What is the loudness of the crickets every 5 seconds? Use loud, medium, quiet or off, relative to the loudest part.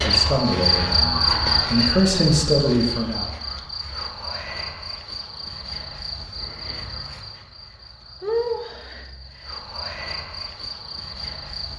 loud, medium, medium.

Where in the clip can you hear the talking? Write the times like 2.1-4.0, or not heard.
0.0-3.3.